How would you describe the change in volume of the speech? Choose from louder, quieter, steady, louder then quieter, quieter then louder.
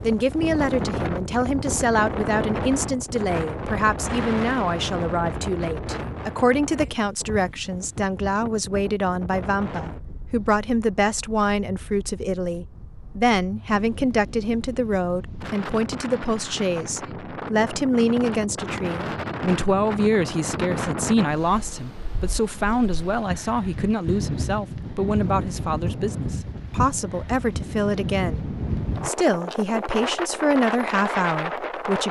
steady.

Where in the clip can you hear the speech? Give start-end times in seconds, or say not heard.
0.0-32.0.